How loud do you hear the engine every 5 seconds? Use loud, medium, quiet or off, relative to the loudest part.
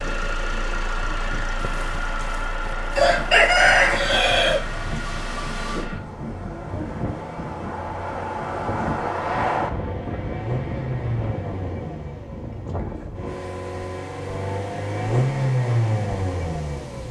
medium, quiet, medium, loud.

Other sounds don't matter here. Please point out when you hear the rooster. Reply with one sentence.
The rooster can be heard from 1.6 to 4.7 s.